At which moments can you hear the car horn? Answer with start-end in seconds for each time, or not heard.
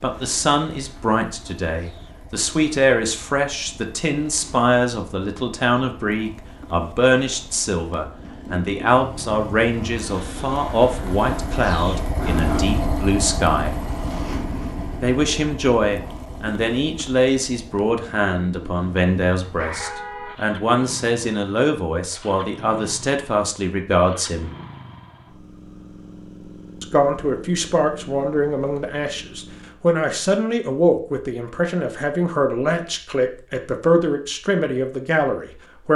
19.4-20.4.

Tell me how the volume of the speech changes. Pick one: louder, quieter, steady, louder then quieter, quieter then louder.
steady.